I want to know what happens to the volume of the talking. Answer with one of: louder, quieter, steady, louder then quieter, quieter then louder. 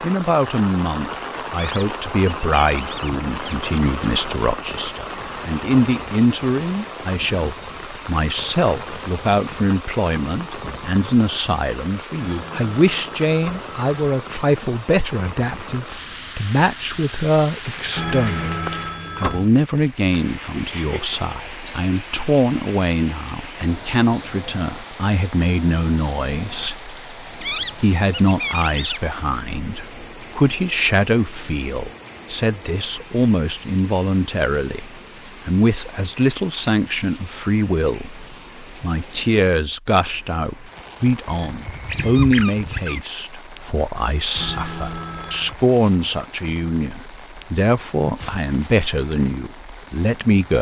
steady.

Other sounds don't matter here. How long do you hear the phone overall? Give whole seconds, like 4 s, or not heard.
5 s.